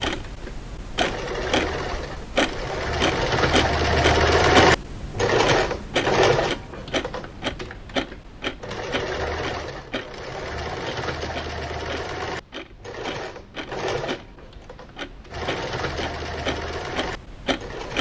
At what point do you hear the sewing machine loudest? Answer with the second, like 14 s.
4 s.